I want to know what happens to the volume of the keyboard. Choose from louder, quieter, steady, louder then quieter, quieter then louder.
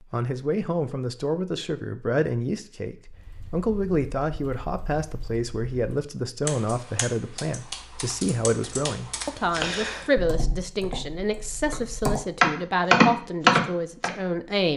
louder.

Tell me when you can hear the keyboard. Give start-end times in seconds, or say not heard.
3.0-14.1.